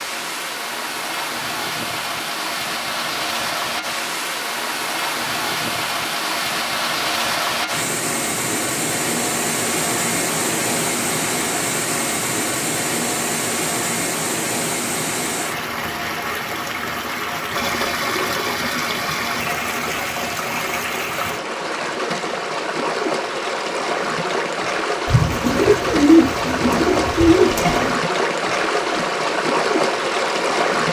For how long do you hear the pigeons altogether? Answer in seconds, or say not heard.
3 s.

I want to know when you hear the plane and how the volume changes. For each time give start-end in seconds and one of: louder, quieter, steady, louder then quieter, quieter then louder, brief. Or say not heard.
not heard.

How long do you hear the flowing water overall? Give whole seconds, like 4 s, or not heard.
31 s.